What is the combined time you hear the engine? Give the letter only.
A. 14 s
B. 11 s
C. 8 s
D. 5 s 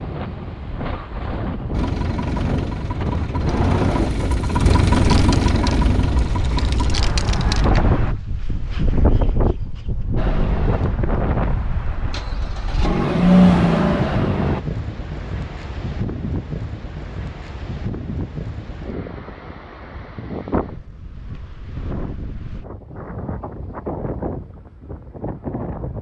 B.